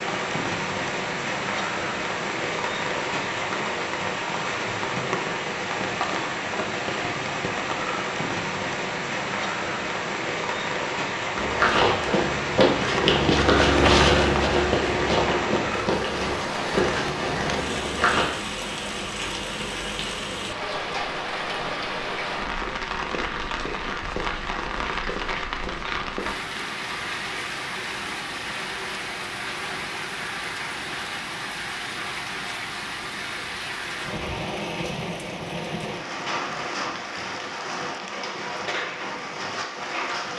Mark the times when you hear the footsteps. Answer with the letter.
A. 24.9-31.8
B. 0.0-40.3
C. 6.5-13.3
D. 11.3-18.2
D.